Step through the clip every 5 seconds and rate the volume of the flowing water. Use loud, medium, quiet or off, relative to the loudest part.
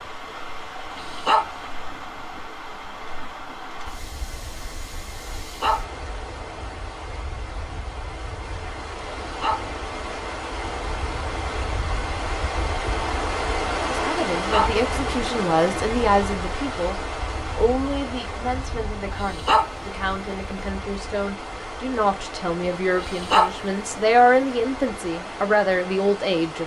medium, medium, loud, loud, medium, medium.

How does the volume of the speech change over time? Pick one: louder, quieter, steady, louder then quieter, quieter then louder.
quieter then louder.